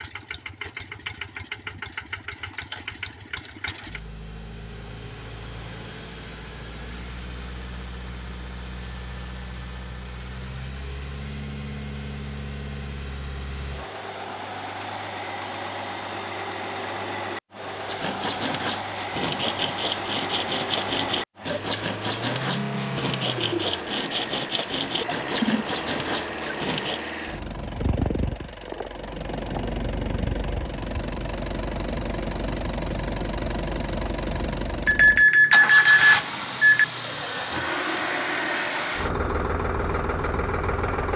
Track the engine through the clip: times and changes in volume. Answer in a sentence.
You can hear the engine from 0.0 to 41.1 s, getting louder.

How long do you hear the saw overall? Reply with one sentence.
The saw can be heard for 9 seconds in total.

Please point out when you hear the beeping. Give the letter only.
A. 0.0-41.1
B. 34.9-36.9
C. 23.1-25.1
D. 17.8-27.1
B.